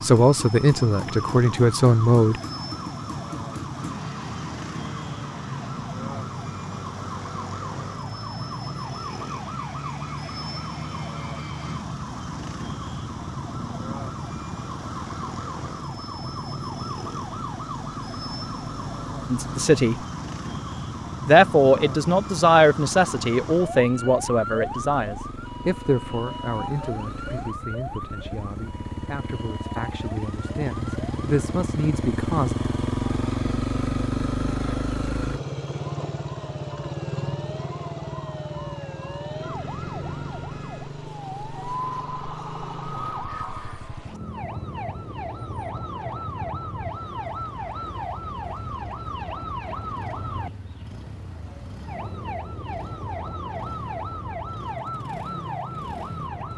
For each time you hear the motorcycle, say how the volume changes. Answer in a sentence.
You can hear the motorcycle from 0.0 to 56.5 s, getting louder then quieter.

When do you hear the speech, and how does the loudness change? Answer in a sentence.
You can hear the speech briefly from 0.0 to 2.4 s; briefly from 19.3 to 19.9 s; and from 21.2 to 32.5 s, getting quieter then louder.